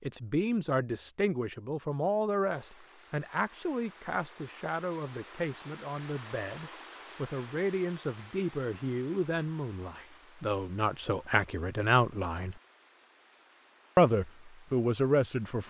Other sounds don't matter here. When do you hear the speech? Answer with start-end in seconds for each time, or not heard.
0.0-12.6, 13.9-15.6.